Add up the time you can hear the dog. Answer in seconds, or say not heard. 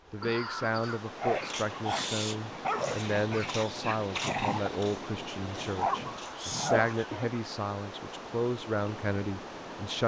6 s.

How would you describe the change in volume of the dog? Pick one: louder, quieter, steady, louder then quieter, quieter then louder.
quieter then louder.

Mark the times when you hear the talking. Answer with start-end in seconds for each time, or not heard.
0.1-10.0.